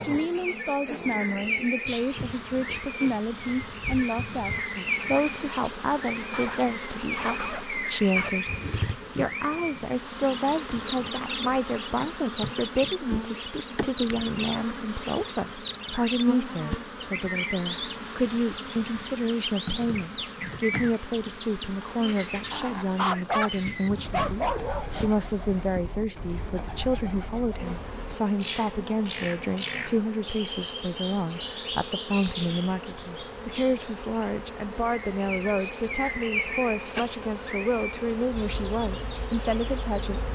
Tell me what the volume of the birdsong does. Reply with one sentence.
The volume of the birdsong stays about the same.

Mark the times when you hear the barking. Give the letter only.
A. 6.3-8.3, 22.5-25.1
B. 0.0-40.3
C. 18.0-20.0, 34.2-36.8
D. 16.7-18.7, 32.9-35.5
A.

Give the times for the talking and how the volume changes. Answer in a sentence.
You can hear the talking from 0.0 to 40.3 s, at a steady volume.